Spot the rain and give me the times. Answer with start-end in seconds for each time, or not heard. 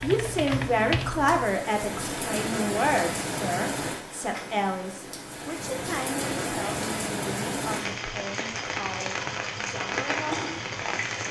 0.0-11.2.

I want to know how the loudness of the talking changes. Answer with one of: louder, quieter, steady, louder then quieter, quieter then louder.
quieter.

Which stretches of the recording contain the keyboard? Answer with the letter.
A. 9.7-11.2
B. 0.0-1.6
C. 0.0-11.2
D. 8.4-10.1
B.